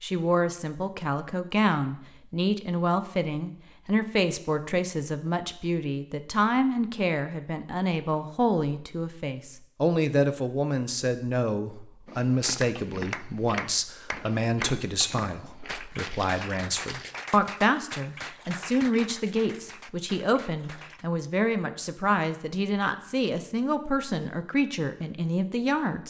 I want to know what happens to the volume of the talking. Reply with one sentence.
The volume of the talking stays about the same.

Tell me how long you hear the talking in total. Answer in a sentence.
You can hear the talking for 26 seconds altogether.